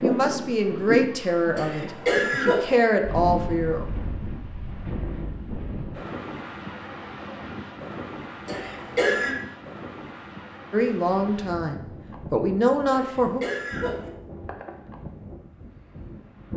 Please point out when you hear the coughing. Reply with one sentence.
The coughing can be heard from 1.6 to 2.8 s, from 8.4 to 9.3 s and from 12.9 to 14.1 s.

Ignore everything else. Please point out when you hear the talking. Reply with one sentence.
You can hear the talking from 0.0 to 3.9 s and from 10.7 to 13.4 s.